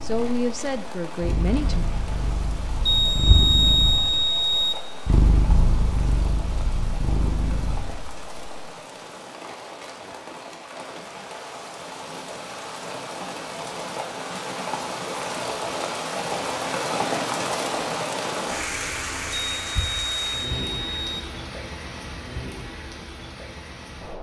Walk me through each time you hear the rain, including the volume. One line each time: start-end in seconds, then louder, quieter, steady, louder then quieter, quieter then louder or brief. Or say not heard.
0.0-24.1 louder then quieter.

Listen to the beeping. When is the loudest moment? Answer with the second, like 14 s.
4 s.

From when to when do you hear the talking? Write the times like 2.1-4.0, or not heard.
0.0-1.9.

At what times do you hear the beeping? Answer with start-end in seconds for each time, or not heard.
2.9-4.8, 19.6-21.2.